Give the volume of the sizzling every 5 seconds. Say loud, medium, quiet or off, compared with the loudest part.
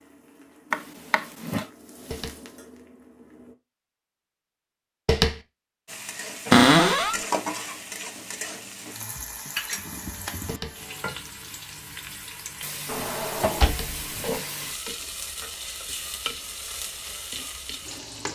quiet, loud, loud, loud.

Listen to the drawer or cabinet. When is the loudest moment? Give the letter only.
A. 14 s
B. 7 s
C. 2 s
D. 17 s
B.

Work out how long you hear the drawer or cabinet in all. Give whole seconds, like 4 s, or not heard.
3 s.